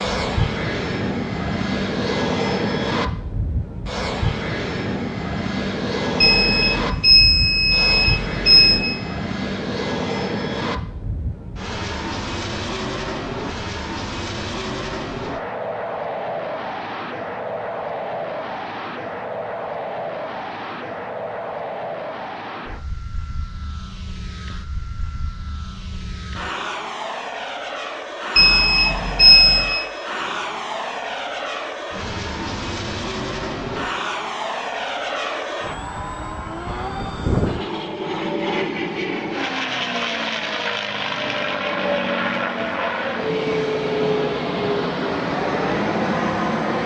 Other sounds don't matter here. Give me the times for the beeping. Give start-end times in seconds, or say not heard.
6.2-8.8, 28.4-29.8.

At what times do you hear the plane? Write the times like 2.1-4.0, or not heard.
0.0-46.8.